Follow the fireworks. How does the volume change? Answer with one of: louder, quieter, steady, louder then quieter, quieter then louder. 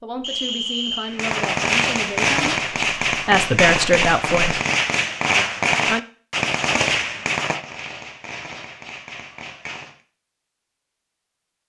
quieter.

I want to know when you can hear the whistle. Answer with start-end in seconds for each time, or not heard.
0.2-1.1.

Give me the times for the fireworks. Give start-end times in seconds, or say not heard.
1.1-10.0.